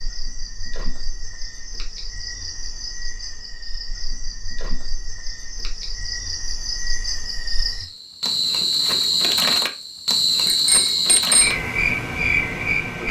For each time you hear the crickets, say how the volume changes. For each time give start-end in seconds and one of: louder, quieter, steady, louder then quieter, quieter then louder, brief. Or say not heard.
0.0-13.0 louder.